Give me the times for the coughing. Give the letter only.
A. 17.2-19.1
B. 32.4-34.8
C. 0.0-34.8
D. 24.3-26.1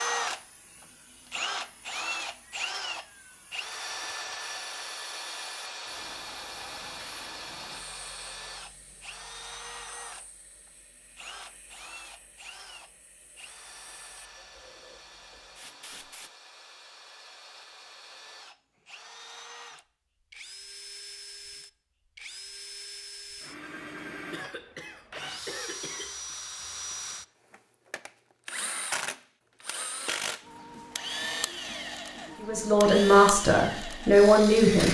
D.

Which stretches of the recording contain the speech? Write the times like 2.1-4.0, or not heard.
32.4-34.8.